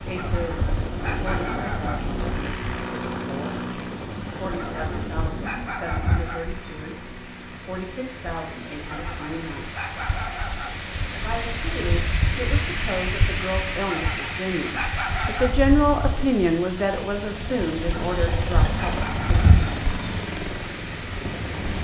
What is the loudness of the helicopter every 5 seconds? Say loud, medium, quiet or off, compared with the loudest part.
loud, medium, off, loud, loud.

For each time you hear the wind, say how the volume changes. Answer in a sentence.
You can hear the wind from 0.0 to 21.8 s, getting louder.